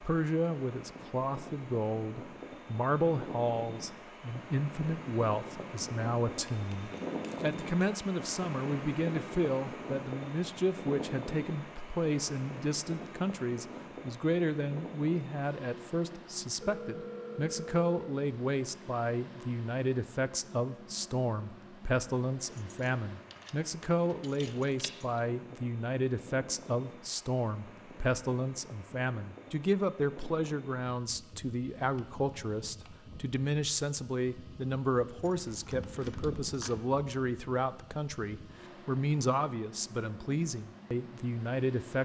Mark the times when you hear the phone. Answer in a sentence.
You can hear the phone from 16.6 to 18.1 s.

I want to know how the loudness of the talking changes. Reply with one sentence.
The loudness of the talking stays about the same.